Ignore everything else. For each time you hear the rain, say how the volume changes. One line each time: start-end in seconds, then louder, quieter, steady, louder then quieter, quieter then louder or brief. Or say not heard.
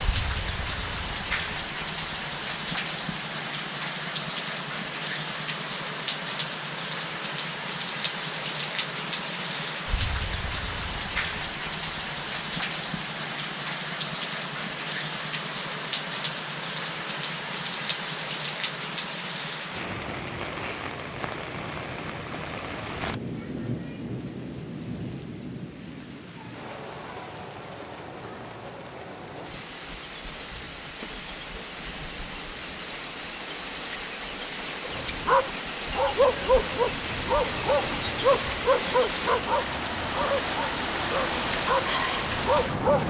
0.0-43.0 quieter then louder.